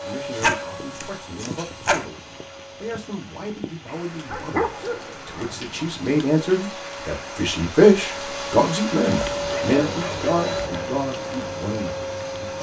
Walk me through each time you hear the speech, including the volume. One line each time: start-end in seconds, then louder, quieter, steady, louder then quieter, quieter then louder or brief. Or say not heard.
0.0-12.5 louder then quieter.